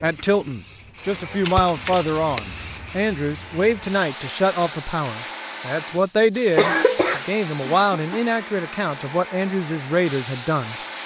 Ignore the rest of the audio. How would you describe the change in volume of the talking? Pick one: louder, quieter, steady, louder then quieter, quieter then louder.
steady.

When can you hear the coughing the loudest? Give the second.
7 s.